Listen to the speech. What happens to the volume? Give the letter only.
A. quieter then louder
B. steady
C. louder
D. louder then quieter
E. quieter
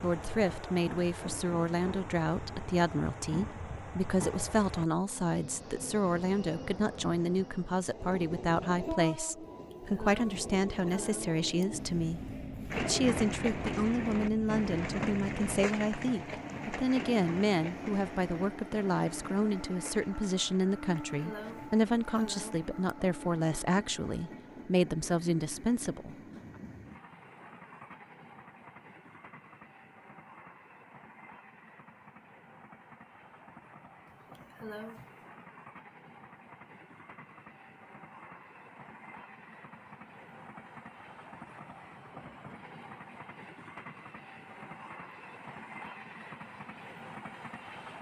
B.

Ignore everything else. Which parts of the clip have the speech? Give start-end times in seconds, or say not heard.
0.0-26.1.